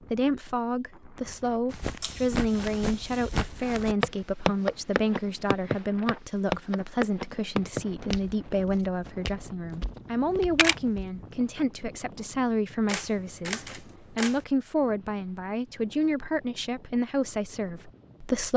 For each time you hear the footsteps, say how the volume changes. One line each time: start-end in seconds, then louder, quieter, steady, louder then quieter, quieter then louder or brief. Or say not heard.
1.7-11.2 louder then quieter.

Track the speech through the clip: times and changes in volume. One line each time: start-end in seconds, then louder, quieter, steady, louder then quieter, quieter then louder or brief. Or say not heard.
0.1-18.5 steady.